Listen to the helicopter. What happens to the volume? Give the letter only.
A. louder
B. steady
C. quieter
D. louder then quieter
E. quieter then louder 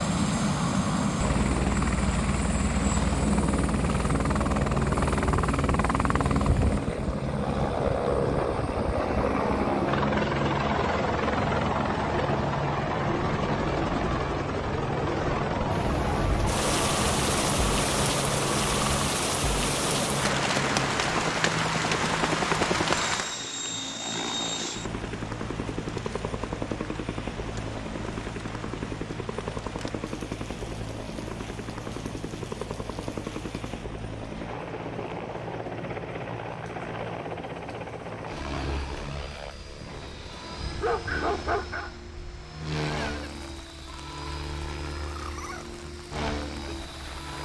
C.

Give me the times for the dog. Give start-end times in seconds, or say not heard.
40.8-42.0.